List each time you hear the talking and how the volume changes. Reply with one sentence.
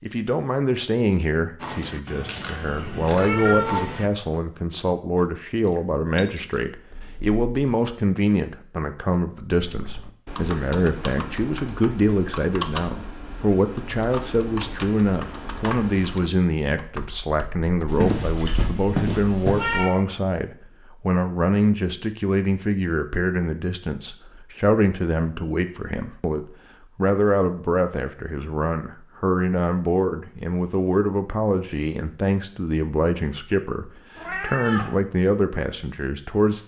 The talking can be heard from 0.0 to 36.6 s, at a steady volume.